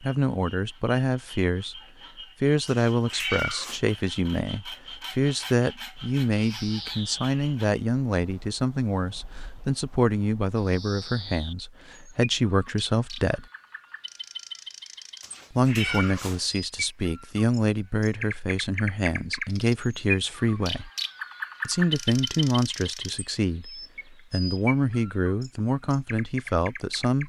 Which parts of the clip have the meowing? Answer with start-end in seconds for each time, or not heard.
2.6-3.8, 15.2-16.4.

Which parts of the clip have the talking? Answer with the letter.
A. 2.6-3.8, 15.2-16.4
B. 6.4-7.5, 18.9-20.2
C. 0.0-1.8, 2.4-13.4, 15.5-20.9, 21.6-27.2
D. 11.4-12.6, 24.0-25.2
C.